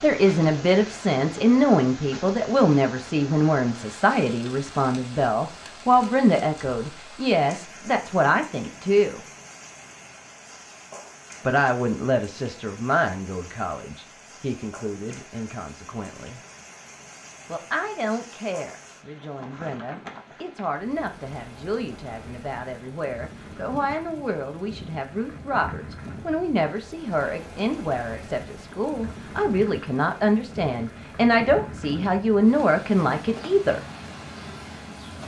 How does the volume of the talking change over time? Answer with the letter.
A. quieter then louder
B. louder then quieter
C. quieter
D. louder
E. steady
A.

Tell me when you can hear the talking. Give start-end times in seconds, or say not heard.
0.0-9.2, 11.4-16.4, 17.4-33.8.